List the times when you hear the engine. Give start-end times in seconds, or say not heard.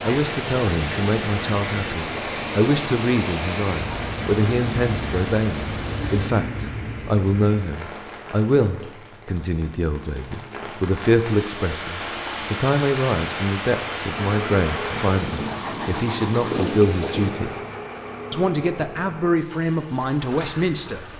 0.0-6.3, 14.1-21.1.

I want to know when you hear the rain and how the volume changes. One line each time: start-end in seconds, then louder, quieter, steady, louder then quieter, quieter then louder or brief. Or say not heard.
0.0-17.4 quieter then louder.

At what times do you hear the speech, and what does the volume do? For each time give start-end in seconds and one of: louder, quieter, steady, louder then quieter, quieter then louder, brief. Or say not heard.
0.0-17.5 steady
18.3-21.1 brief.